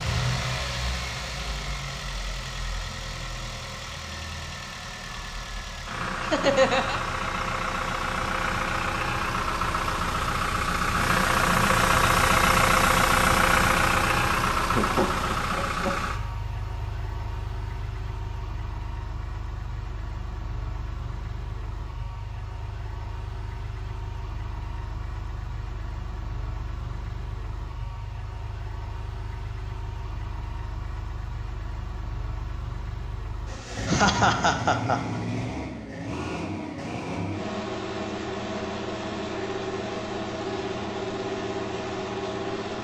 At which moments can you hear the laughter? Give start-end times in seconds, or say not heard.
6.2-7.0, 14.8-15.9, 33.9-35.2.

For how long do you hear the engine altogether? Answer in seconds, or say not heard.
43 s.